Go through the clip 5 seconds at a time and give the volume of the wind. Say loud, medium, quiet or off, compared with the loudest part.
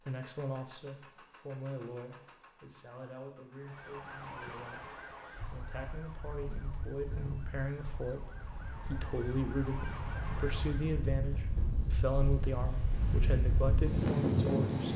off, quiet, loud.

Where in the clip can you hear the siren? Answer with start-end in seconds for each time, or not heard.
3.5-11.1.